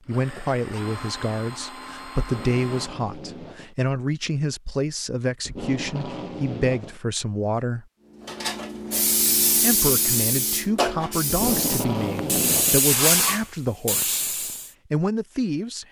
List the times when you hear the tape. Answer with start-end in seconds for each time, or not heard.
2.2-3.8, 5.4-7.0, 11.2-12.8.